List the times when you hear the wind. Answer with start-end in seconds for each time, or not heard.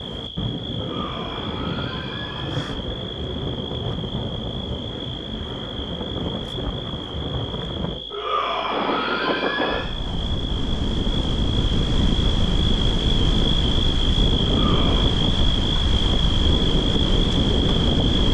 0.0-18.2.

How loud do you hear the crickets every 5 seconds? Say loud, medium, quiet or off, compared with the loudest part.
medium, medium, loud, loud.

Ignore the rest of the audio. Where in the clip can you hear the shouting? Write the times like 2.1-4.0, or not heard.
0.8-2.7, 8.1-9.9, 14.4-15.1.